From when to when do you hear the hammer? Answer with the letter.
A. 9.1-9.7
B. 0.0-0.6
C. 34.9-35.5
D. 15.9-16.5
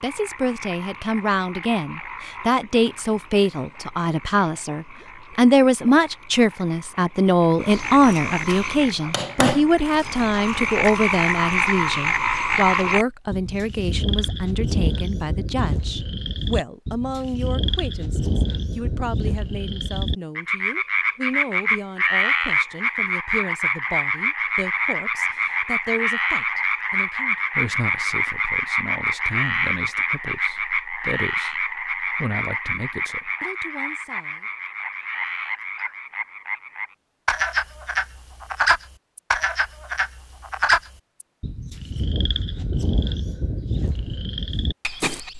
A.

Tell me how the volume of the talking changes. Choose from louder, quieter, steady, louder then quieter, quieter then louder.
quieter.